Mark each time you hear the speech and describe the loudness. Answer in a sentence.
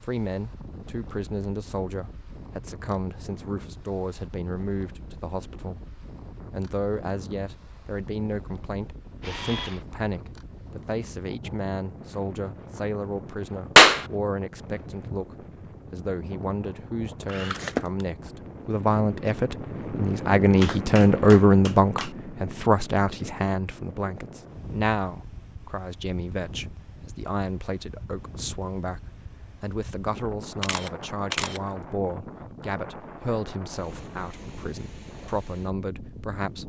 You can hear the speech from 0.0 to 5.8 s, at a steady volume; and from 6.5 to 36.6 s, getting louder then quieter.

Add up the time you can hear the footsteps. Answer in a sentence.
You can't hear the footsteps here.